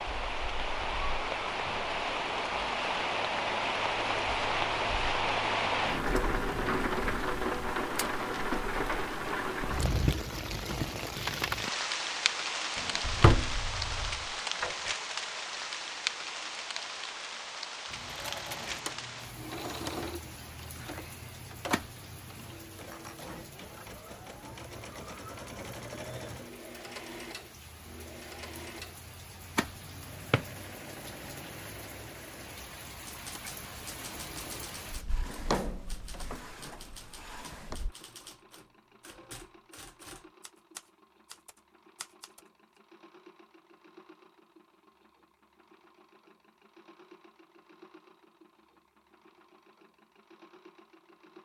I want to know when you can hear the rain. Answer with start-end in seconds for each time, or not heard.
0.0-38.0.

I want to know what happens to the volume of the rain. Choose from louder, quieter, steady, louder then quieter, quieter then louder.
quieter.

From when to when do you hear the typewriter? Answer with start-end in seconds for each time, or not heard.
32.9-42.8.